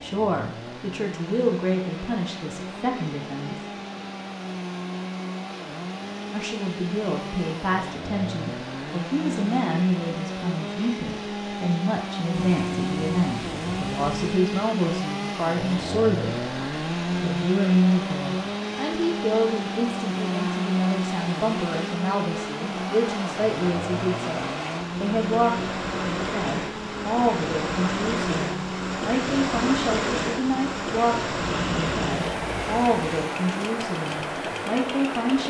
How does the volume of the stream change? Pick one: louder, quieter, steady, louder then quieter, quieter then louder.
louder.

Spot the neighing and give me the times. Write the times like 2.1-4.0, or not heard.
not heard.